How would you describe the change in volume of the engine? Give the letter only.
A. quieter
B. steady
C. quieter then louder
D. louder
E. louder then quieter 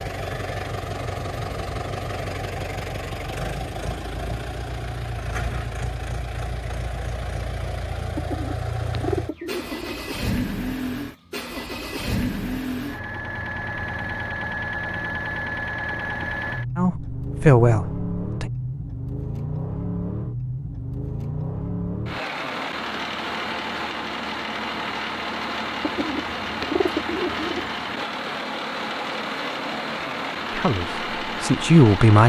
B.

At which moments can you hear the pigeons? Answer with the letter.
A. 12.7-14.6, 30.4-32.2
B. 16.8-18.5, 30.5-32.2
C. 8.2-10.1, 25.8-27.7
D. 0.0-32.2
C.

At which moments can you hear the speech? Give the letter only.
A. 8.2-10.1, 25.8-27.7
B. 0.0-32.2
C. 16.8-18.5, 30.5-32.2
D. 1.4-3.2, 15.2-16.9
C.